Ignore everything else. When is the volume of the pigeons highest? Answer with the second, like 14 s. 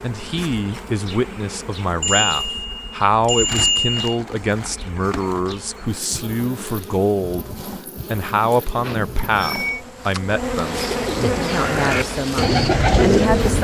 13 s.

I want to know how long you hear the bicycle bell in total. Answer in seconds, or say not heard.
3 s.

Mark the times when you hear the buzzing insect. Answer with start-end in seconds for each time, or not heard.
0.0-13.5.